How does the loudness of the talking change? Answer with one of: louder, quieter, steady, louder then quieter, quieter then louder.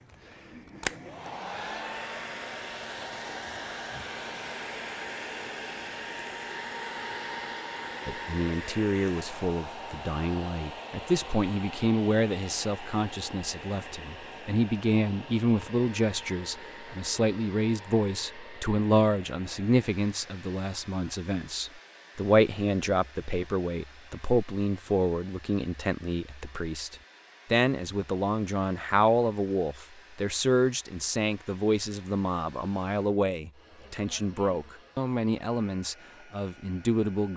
steady.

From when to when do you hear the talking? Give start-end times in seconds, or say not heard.
8.1-37.3.